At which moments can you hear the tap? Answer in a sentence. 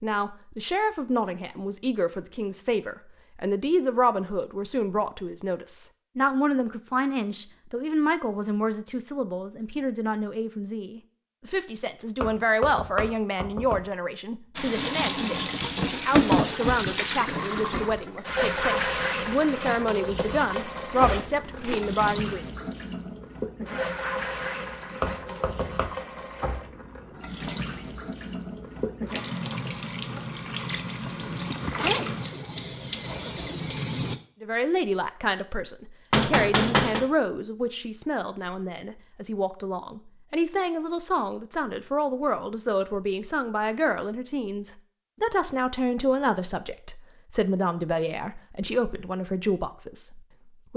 The tap can be heard from 14.6 to 34.1 s.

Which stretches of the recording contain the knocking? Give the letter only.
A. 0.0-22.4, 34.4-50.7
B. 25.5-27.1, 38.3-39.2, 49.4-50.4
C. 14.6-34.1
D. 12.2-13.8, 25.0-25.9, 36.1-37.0
D.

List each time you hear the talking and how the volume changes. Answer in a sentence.
The talking can be heard from 0.0 to 22.4 s, at a steady volume; and from 34.4 to 50.7 s, at a steady volume.